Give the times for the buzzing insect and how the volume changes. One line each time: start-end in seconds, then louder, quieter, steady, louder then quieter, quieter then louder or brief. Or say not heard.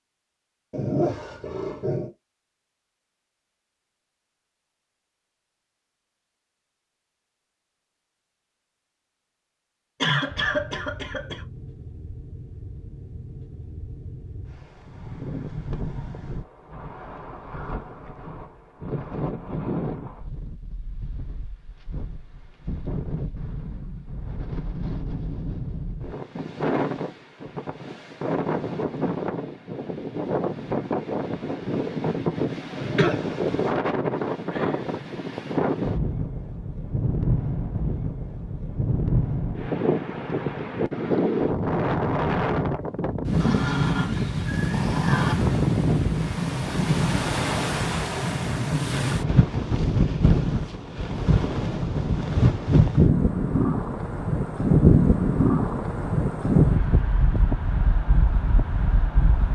not heard.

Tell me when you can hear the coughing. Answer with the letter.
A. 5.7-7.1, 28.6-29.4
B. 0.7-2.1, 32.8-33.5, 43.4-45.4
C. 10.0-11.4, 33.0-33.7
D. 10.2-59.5
C.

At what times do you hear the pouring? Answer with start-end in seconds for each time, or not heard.
not heard.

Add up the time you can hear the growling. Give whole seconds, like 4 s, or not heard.
4 s.